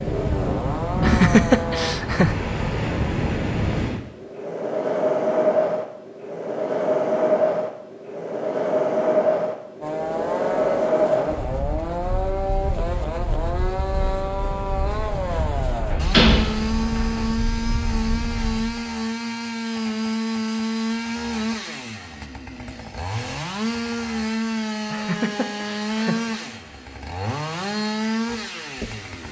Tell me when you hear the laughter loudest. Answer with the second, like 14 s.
1 s.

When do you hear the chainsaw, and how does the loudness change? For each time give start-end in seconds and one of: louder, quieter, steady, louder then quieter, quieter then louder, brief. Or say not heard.
0.0-1.9 brief
9.8-29.2 steady.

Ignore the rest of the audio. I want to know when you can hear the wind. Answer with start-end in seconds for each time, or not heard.
0.0-18.8.